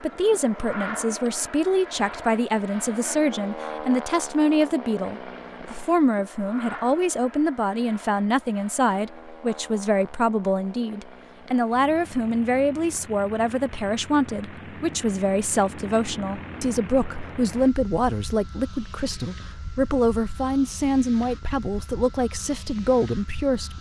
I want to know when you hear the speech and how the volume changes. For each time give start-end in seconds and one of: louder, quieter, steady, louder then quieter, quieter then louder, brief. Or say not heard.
0.0-23.7 steady.